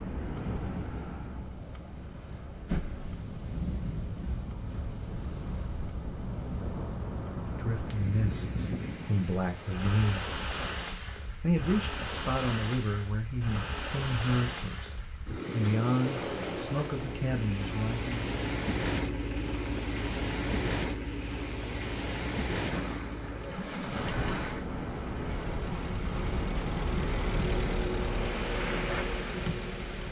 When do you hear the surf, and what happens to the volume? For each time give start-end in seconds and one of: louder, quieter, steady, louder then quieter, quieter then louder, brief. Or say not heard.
0.0-30.0 steady.